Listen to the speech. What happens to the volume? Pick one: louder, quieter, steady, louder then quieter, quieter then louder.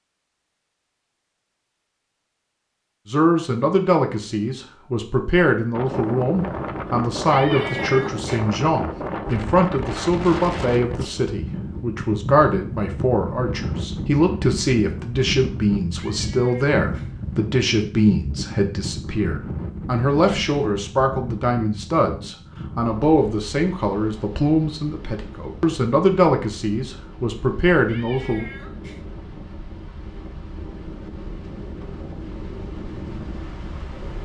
steady.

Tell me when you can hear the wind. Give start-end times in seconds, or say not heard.
5.7-34.2.